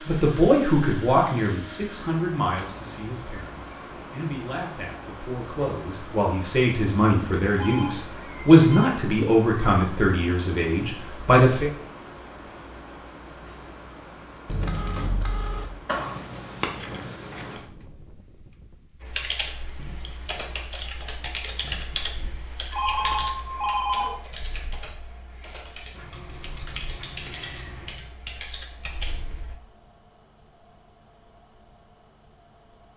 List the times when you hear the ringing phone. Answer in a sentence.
The ringing phone can be heard from 7.5 to 9.0 s, from 14.4 to 15.7 s and from 22.7 to 24.2 s.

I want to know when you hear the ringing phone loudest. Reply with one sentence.
The loudest moment of the ringing phone is at 24 seconds.